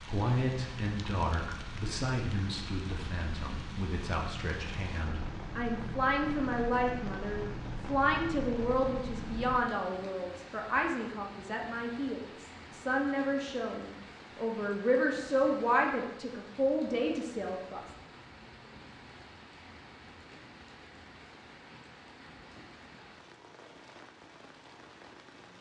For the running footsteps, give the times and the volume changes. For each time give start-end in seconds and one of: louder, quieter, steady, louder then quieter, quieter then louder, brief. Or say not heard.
not heard.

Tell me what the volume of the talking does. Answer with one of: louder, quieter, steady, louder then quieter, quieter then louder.
louder.